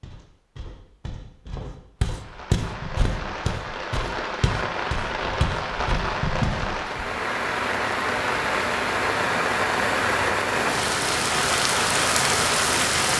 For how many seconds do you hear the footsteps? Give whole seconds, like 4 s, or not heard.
7 s.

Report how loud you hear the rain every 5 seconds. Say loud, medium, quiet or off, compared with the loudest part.
medium, loud, loud.